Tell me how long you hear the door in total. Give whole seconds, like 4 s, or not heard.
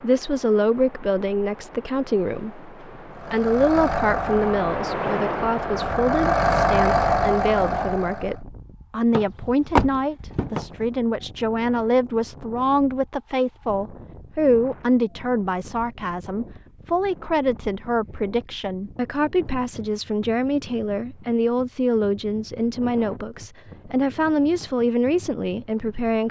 2 s.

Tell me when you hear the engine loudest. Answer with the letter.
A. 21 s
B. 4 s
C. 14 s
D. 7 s
D.